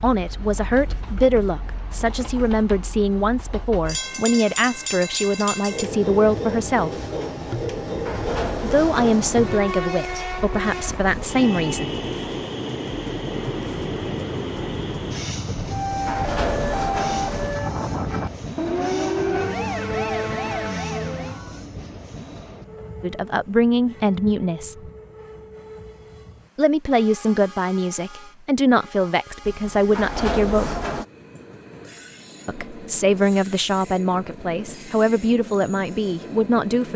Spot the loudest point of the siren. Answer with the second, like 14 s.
19 s.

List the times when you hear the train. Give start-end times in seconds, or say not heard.
0.0-36.9.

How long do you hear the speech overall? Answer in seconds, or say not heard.
21 s.